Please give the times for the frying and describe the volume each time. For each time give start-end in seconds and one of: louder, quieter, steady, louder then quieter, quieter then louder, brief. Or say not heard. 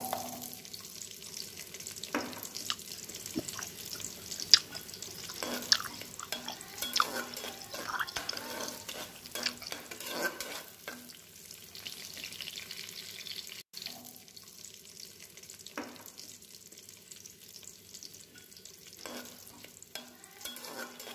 0.0-21.0 quieter.